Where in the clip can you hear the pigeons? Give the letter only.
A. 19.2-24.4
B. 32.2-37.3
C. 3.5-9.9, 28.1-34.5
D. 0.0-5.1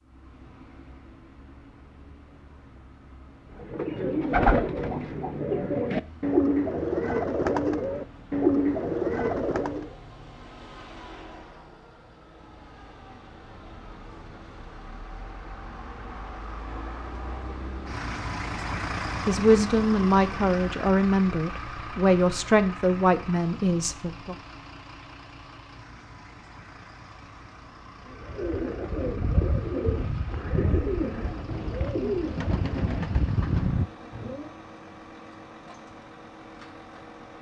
C.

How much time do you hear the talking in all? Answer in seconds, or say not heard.
5 s.